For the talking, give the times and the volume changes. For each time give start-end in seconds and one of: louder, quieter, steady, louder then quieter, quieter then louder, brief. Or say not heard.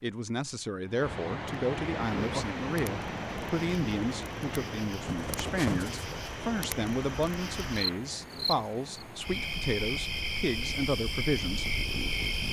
0.0-11.7 steady.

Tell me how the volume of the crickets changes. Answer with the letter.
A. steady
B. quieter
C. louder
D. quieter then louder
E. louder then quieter
C.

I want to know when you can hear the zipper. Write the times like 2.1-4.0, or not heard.
5.0-6.2.